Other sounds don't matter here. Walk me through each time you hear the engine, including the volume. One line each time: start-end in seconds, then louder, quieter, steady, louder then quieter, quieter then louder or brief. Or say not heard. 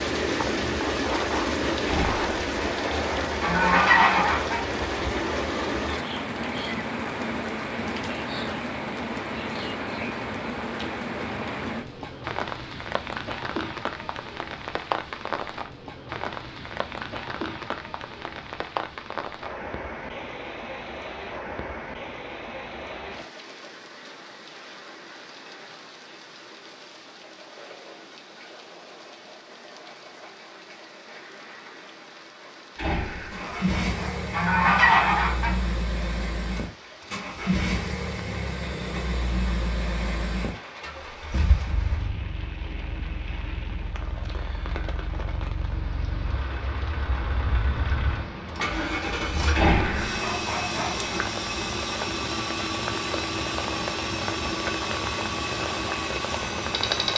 33.3-57.1 quieter then louder.